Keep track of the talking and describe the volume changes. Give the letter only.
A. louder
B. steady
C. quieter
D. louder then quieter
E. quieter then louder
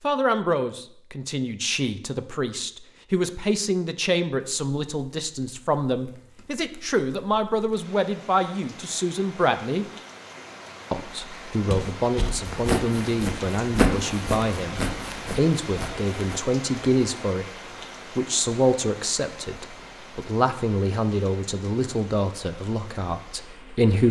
B.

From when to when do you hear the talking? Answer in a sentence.
The talking can be heard from 0.0 to 9.8 s, from 10.9 to 17.4 s and from 18.1 to 24.0 s.